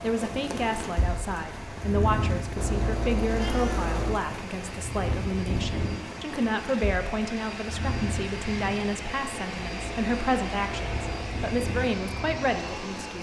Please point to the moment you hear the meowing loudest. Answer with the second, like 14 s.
4 s.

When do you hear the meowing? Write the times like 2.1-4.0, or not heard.
2.5-4.2, 9.6-11.4.